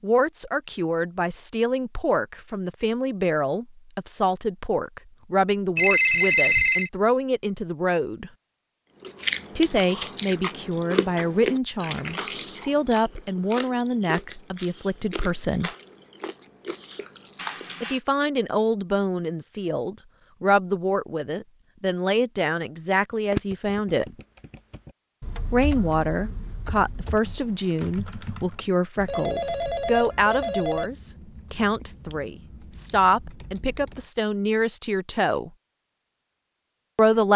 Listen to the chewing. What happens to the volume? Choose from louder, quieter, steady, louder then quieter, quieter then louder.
quieter.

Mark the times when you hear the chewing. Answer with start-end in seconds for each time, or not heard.
9.0-17.8.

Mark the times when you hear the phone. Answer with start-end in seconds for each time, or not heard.
5.8-6.9, 17.4-18.0, 29.1-30.9.